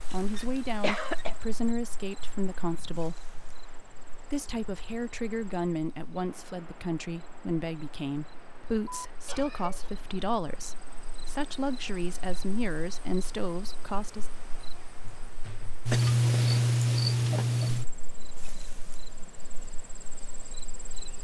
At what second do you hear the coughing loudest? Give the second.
1 s.